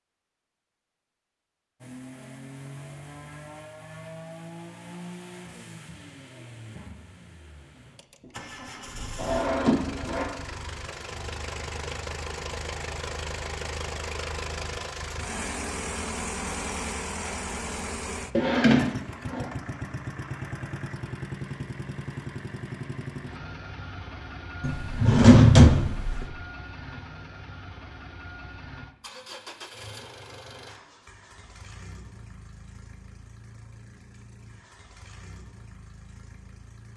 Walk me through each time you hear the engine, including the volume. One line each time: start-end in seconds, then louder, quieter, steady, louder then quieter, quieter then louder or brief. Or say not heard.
1.8-36.9 louder then quieter.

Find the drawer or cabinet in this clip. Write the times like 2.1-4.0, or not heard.
9.2-10.2, 18.4-19.4, 24.6-26.2.